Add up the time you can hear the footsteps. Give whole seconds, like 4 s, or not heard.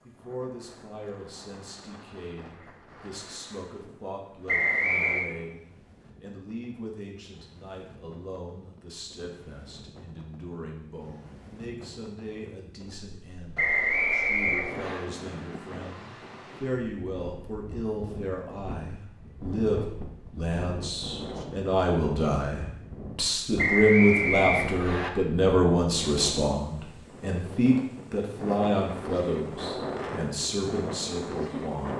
not heard.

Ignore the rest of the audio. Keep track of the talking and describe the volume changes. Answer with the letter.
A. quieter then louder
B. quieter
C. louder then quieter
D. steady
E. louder
E.